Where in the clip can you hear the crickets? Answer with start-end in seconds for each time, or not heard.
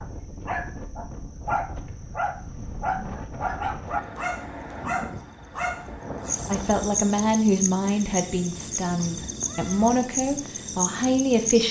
0.0-11.6.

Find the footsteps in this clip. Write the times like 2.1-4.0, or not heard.
not heard.